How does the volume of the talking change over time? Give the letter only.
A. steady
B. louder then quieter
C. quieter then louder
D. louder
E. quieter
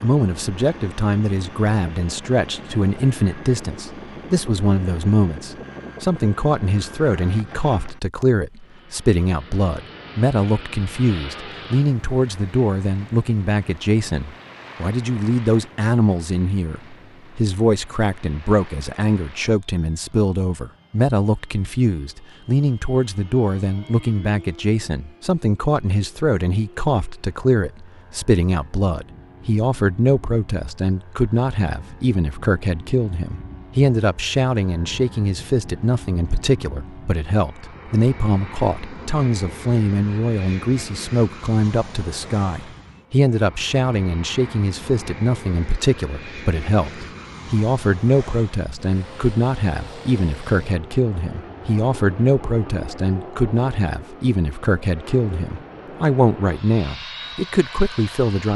A.